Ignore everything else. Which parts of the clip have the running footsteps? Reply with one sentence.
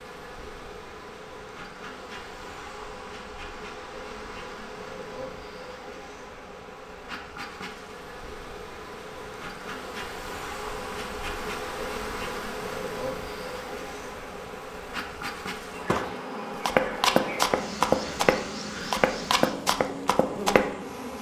The running footsteps can be heard from 15.8 to 20.6 s.